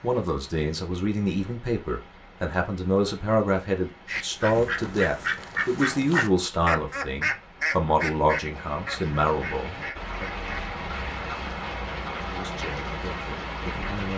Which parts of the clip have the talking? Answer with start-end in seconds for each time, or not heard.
0.0-10.4, 12.0-14.1.